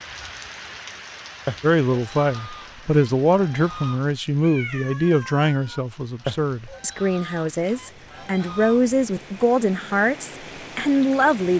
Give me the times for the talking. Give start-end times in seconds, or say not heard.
1.6-11.5.